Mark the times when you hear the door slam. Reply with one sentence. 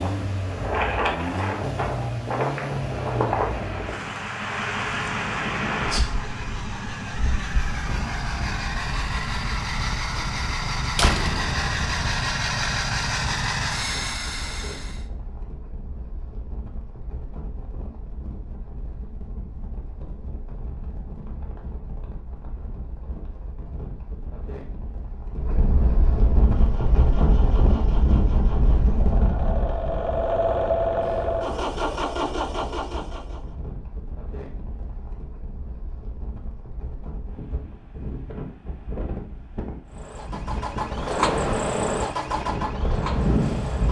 You can hear the door slam from 10.9 to 12.2 s.